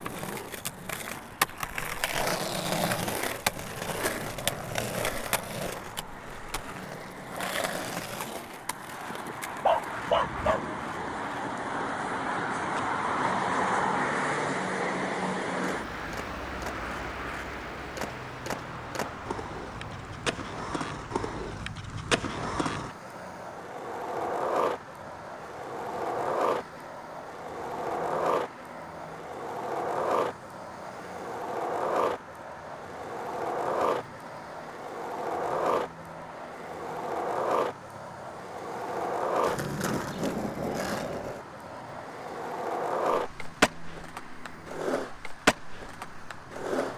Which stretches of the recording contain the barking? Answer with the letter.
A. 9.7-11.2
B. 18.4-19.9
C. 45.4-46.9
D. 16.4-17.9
A.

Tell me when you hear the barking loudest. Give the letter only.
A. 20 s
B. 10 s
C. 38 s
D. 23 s
B.